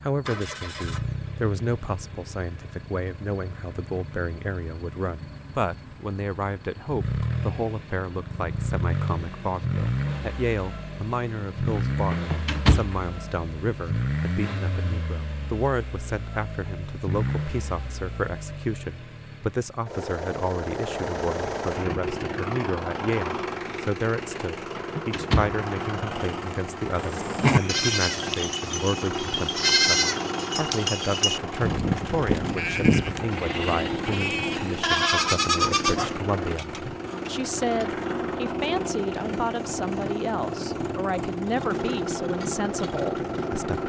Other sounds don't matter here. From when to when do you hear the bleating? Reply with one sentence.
You can hear the bleating from 26.9 to 37.1 s.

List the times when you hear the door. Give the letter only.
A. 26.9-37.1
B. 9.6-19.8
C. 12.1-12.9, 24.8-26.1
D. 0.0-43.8
C.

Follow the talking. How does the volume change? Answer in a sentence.
The loudness of the talking stays about the same.